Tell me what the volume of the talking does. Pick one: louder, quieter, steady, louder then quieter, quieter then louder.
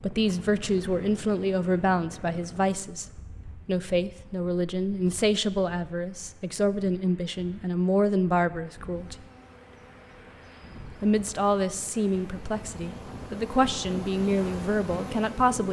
steady.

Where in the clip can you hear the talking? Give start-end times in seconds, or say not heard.
0.0-9.2, 11.0-15.6.